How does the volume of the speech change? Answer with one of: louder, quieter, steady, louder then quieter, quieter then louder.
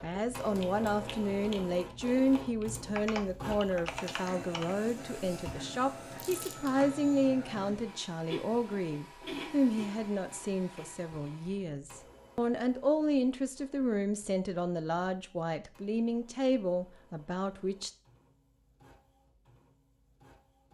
steady.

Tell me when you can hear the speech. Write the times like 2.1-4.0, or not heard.
0.0-17.9.